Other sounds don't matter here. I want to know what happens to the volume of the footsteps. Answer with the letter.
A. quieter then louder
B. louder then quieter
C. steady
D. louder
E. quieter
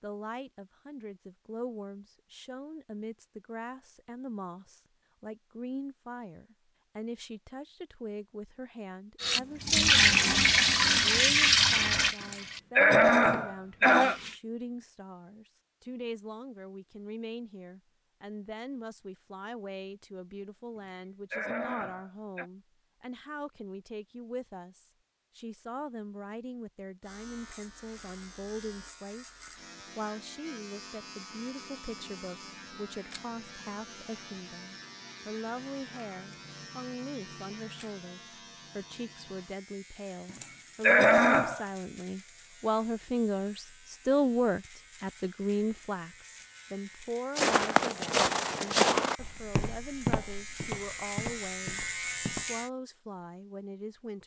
E.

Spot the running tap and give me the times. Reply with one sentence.
You can hear the running tap from 9.2 to 14.4 s.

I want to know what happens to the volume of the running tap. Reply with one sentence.
The volume of the running tap goes down.